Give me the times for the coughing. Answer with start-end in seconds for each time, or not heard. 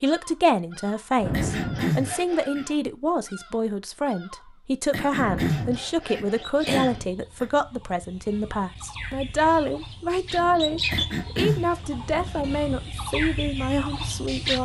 1.3-2.6, 4.9-7.5, 10.9-11.7.